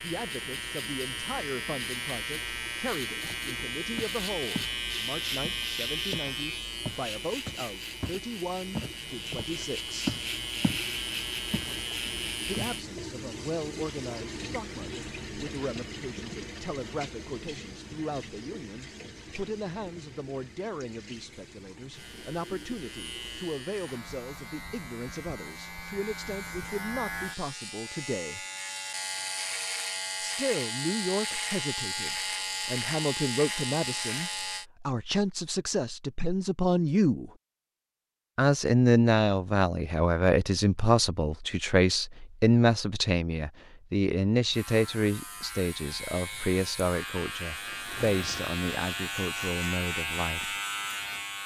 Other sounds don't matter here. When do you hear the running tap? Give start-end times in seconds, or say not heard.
0.0-24.0.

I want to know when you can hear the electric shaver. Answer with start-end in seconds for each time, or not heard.
0.0-12.8, 21.9-34.6, 44.5-51.4.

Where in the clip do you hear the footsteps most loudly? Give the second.
10 s.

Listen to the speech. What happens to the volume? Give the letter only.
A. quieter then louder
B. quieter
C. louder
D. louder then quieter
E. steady
C.